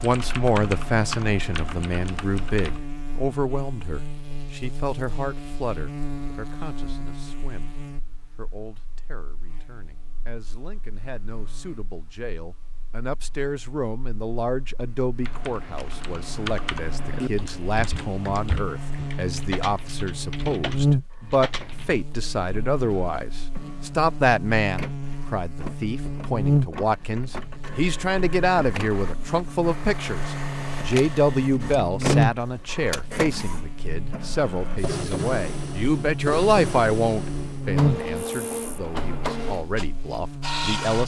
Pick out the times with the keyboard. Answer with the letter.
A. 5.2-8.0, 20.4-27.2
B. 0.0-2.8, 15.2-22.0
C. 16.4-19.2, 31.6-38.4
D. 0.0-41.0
B.